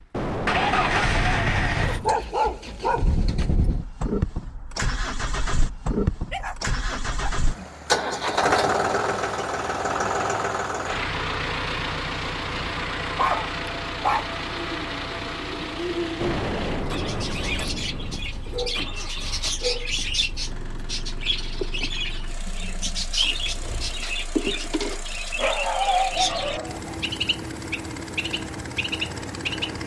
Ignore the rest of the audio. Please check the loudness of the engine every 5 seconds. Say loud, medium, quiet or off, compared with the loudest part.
loud, loud, loud, medium, quiet, medium.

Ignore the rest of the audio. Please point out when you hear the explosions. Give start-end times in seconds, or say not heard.
0.1-2.1, 16.2-18.2.